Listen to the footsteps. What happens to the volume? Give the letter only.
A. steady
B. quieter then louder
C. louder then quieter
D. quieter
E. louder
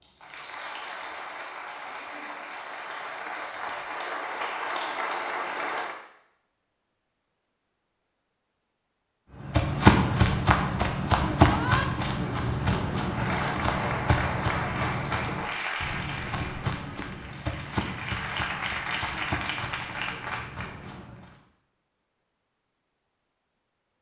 D.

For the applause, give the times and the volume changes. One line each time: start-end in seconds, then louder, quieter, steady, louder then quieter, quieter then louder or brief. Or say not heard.
0.0-6.0 louder
13.1-20.9 quieter then louder.